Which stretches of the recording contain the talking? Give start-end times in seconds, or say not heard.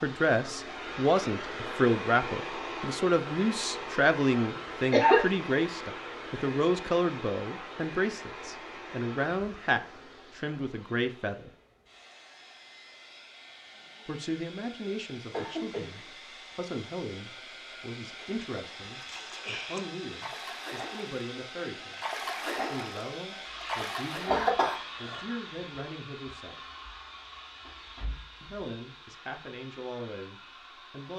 0.0-11.5, 14.1-26.6, 28.4-31.1.